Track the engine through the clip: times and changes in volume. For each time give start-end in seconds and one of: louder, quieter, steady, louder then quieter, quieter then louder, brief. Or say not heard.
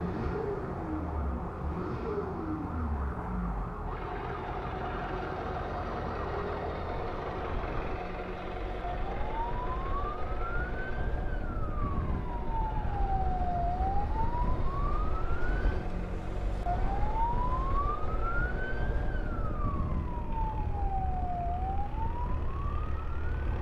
0.0-23.5 quieter.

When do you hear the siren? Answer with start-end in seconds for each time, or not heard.
0.0-23.5.